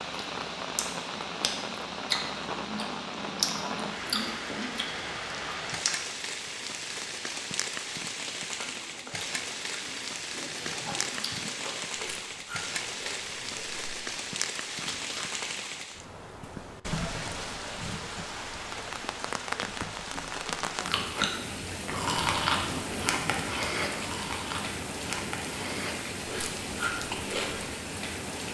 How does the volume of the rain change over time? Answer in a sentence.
The loudness of the rain stays about the same.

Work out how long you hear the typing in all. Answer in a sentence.
The typing can't be heard in this clip.